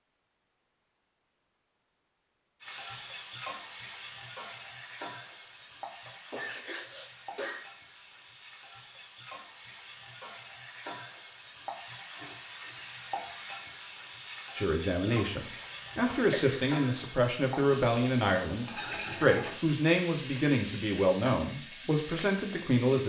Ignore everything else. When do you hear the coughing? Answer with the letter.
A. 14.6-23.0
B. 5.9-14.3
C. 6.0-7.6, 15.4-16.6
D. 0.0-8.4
C.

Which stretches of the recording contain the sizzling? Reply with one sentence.
The sizzling can be heard from 2.6 to 23.0 s.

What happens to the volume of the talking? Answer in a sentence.
The loudness of the talking stays about the same.